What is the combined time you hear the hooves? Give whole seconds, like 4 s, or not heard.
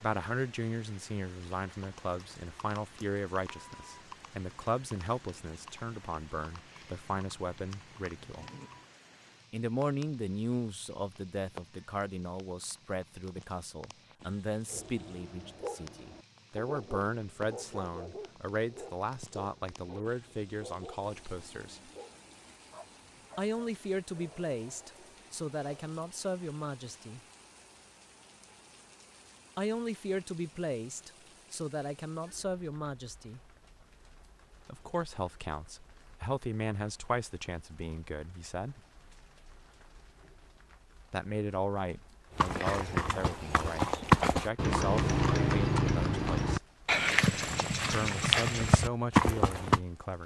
15 s.